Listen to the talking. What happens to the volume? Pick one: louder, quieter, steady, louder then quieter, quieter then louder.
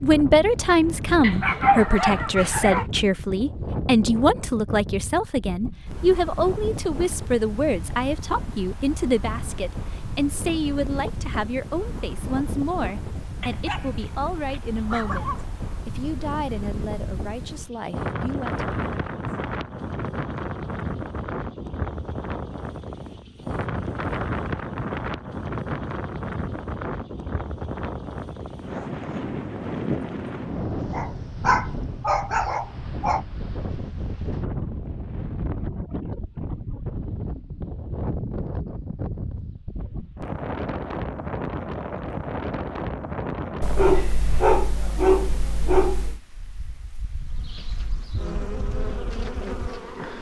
quieter.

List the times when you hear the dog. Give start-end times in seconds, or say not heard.
1.2-2.9, 13.4-15.4, 30.9-33.2, 43.6-46.2.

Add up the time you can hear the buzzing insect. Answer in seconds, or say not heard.
3 s.